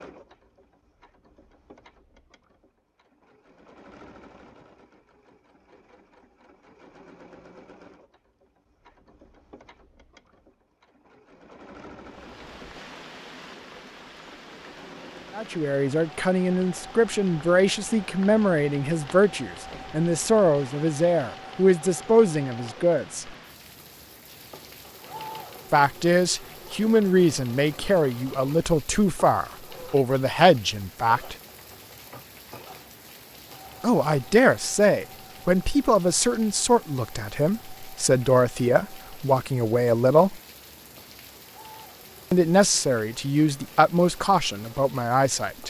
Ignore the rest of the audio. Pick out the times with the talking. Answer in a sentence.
You can hear the talking from 15.3 to 23.3 s, from 25.7 to 31.4 s, from 33.8 to 40.4 s and from 42.3 to 45.6 s.